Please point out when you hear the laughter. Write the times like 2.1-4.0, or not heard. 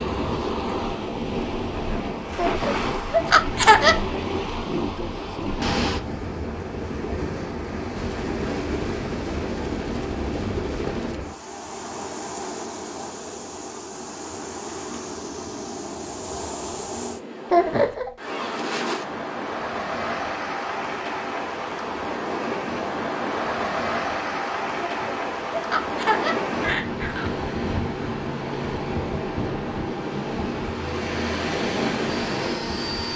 2.4-4.0, 17.5-18.1, 24.8-27.3.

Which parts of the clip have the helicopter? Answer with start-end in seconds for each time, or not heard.
7.9-11.2, 30.8-33.1.